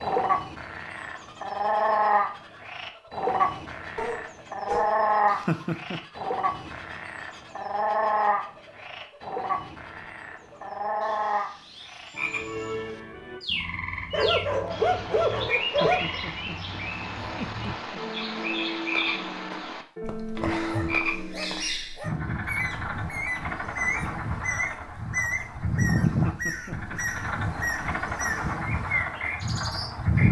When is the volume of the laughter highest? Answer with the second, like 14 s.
6 s.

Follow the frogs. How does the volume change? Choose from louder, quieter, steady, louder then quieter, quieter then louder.
quieter then louder.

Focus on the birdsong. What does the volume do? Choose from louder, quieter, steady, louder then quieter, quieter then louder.
louder.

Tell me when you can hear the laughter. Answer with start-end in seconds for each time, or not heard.
5.3-6.0, 15.6-18.0, 26.1-27.2.